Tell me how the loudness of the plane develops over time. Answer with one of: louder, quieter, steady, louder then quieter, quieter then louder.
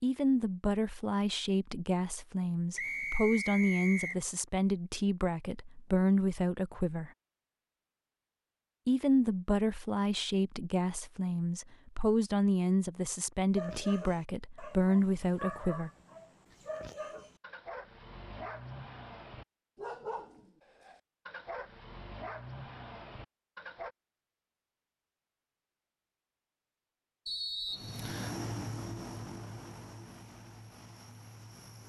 quieter.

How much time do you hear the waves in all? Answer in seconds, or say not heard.
not heard.